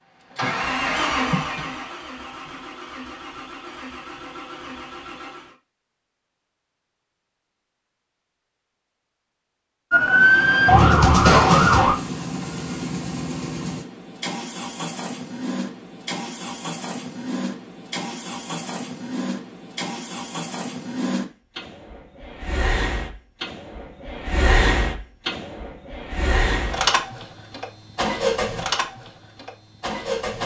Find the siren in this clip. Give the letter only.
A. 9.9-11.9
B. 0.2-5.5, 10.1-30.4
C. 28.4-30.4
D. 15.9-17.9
A.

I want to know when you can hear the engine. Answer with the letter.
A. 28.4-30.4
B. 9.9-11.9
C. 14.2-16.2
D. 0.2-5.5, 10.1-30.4
D.